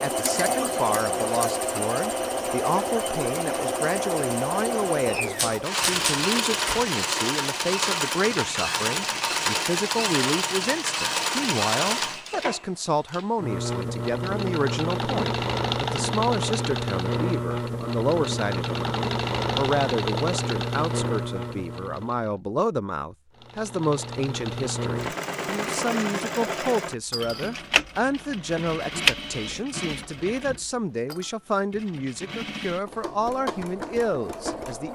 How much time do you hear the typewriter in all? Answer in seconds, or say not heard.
2 s.